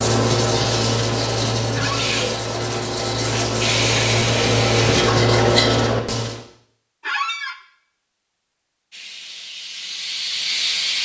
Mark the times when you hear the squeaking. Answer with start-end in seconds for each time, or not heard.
1.7-2.1, 7.0-7.6.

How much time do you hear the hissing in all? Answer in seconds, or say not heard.
5 s.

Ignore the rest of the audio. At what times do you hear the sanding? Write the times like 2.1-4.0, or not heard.
0.0-6.4.